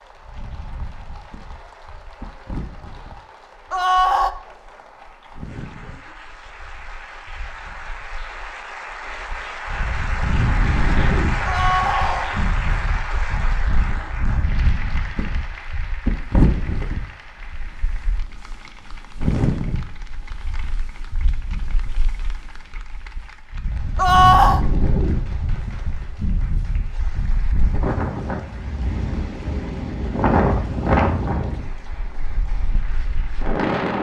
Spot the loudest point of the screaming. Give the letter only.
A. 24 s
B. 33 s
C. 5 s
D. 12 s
A.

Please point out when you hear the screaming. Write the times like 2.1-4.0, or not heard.
3.7-4.3, 11.4-12.3, 23.9-24.6.